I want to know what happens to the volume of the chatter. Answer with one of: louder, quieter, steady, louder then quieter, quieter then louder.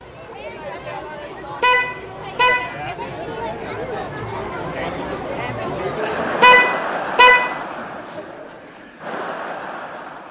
louder then quieter.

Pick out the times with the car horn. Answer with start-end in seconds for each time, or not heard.
1.6-2.8, 6.4-7.6.